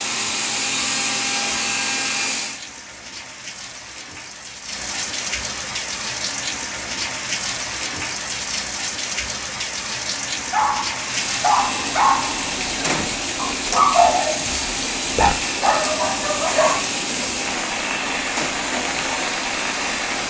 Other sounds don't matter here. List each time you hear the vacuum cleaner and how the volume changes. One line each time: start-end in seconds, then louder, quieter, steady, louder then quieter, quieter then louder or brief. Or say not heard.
0.0-2.6 brief
10.9-20.2 steady.